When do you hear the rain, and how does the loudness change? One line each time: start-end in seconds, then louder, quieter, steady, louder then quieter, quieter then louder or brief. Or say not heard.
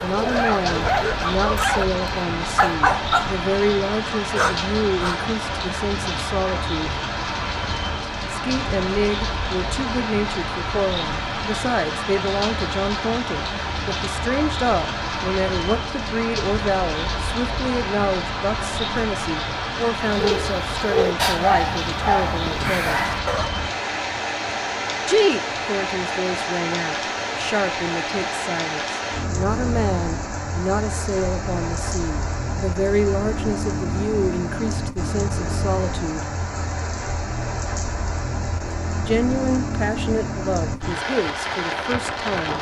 0.0-42.5 steady.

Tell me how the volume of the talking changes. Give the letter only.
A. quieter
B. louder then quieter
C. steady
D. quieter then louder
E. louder
C.